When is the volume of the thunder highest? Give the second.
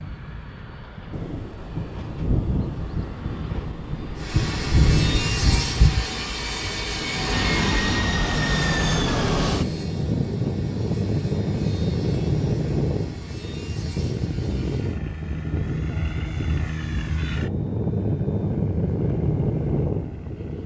5 s.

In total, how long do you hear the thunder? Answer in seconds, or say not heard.
5 s.